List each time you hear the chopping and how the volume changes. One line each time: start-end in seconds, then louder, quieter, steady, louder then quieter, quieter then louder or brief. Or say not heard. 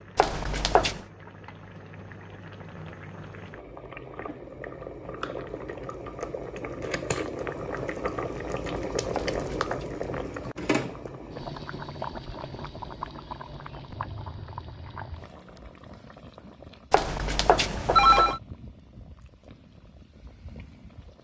not heard.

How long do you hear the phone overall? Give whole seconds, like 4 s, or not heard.
3 s.